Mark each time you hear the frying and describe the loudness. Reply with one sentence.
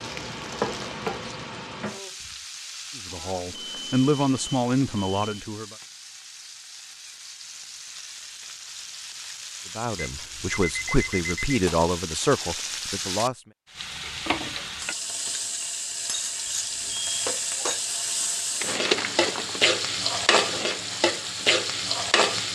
You can hear the frying from 0.0 to 22.4 s, getting quieter then louder.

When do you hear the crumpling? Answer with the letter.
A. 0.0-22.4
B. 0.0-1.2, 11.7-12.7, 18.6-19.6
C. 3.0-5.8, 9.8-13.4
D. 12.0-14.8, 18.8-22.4
B.